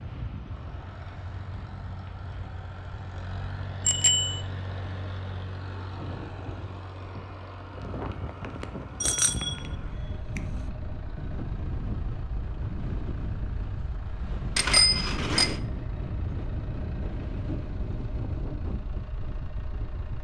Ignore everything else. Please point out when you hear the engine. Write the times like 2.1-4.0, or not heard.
0.1-20.1.